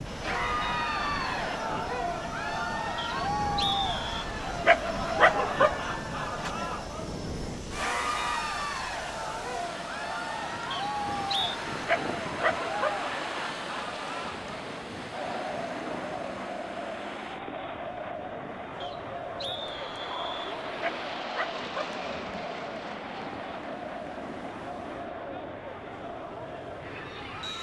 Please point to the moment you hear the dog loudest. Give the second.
5 s.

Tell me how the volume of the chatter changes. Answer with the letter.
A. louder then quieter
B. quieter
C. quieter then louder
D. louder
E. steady
B.